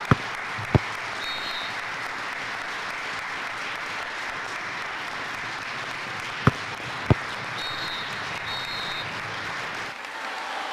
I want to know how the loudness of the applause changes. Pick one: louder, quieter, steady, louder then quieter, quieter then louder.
steady.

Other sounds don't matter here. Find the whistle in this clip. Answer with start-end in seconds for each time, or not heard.
0.1-1.8, 6.5-9.1.